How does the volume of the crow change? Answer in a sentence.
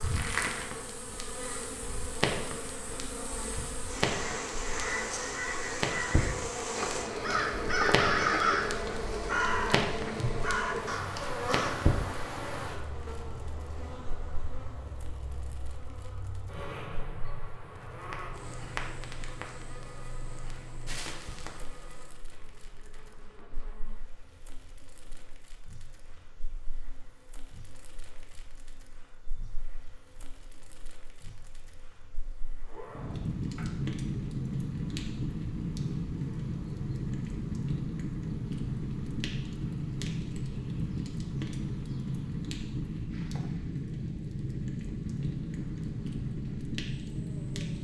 The volume of the crow goes up, then down.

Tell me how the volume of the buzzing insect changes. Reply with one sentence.
The loudness of the buzzing insect goes down.